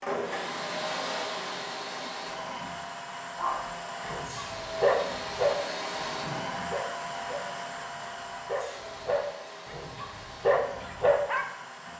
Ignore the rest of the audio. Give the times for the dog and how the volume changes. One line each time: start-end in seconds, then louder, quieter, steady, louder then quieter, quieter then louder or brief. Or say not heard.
3.4-11.4 quieter then louder.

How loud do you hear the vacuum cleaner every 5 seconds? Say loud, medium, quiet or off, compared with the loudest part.
loud, loud, medium.